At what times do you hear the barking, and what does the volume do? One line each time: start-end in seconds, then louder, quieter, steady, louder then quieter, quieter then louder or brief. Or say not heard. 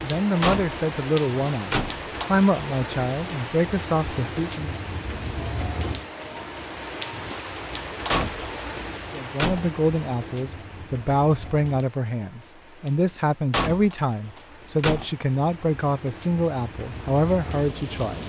not heard.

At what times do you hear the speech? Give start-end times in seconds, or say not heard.
0.0-4.8, 9.1-18.2.